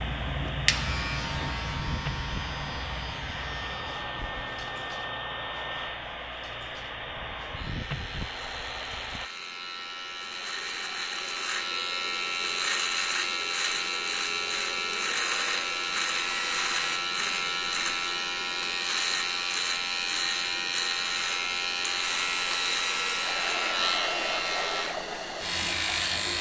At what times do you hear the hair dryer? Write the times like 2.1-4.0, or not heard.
0.0-9.3, 15.1-17.0, 22.2-26.3.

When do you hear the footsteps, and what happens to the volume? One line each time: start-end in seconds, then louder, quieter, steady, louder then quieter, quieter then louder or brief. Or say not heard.
not heard.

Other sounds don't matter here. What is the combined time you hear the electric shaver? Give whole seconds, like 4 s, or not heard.
26 s.